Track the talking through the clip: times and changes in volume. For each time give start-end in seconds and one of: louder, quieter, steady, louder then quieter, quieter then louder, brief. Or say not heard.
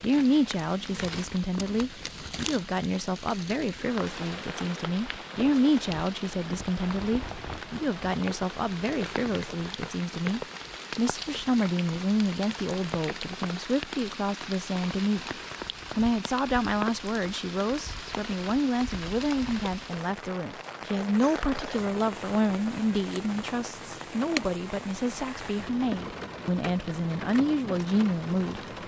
0.0-28.6 steady.